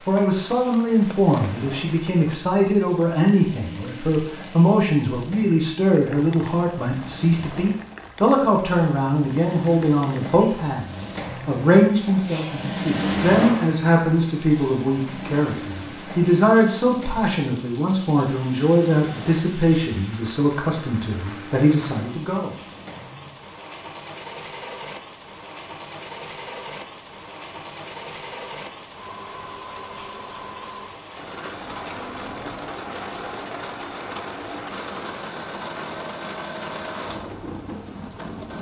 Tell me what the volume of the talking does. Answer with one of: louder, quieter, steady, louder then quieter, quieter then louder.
steady.